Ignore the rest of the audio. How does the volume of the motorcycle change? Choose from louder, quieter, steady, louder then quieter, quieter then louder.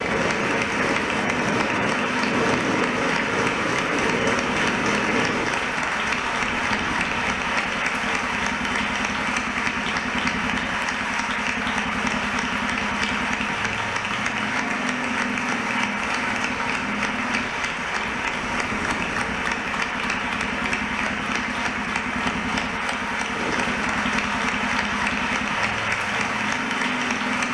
steady.